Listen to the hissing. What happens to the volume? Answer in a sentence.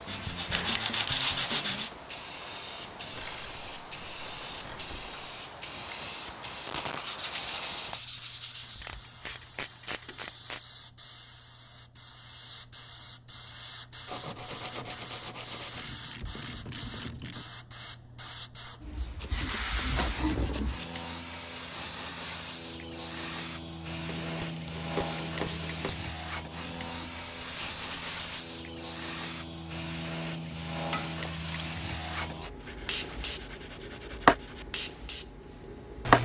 The volume of the hissing goes down, then up.